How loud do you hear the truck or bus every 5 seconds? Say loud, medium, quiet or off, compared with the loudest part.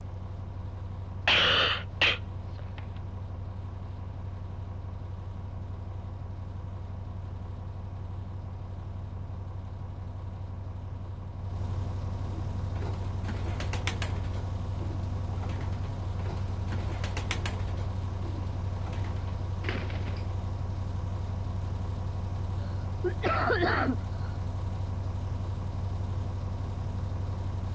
medium, medium, loud, loud, loud, loud.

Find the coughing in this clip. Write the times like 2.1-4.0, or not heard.
1.2-2.8, 23.0-23.9.